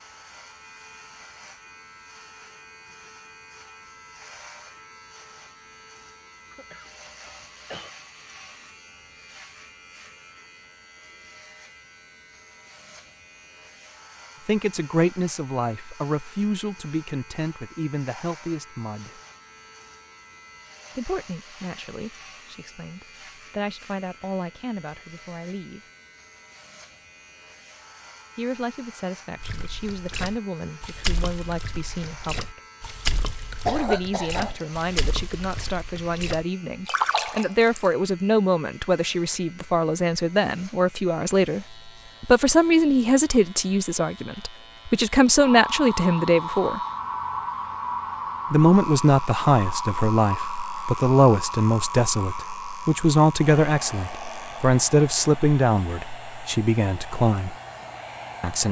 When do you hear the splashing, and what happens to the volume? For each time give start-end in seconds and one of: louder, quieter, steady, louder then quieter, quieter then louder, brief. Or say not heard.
29.4-37.8 quieter then louder.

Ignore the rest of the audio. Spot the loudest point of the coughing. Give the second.
34 s.